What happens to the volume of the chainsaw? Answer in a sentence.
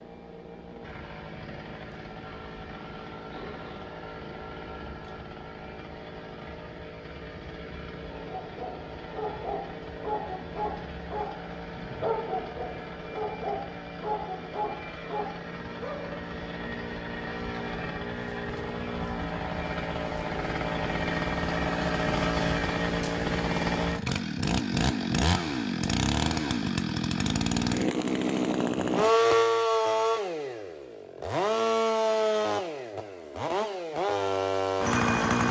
The volume of the chainsaw goes up.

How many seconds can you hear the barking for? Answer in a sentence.
The barking can be heard for 8 seconds in total.